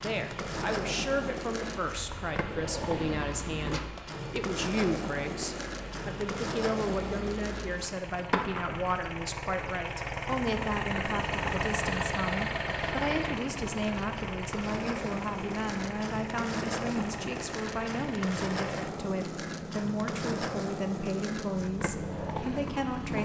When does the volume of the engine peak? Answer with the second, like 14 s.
12 s.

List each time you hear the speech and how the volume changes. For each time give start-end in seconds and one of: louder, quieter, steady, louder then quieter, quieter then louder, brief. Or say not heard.
0.0-23.2 steady.